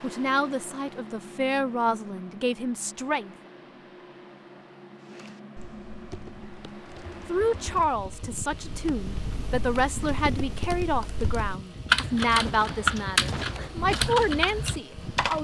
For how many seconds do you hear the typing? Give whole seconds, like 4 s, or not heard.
10 s.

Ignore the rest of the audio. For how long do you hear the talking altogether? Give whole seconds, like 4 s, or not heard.
11 s.